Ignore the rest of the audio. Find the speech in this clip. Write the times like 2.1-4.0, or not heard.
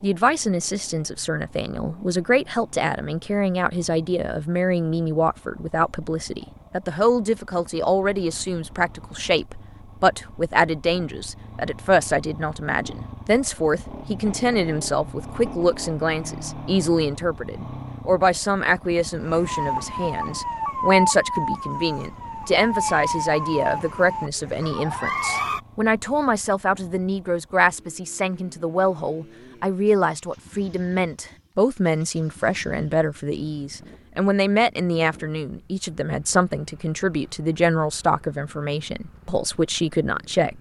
0.0-40.5.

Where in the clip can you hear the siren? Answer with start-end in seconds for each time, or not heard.
19.2-25.6.